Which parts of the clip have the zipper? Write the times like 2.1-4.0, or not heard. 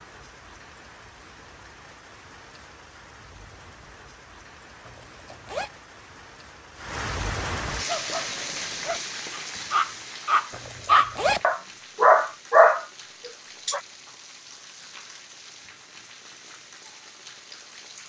4.8-5.7, 10.5-11.4.